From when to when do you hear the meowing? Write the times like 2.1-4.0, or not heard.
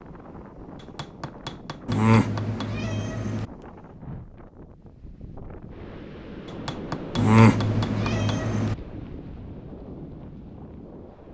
1.9-3.5, 7.2-8.8.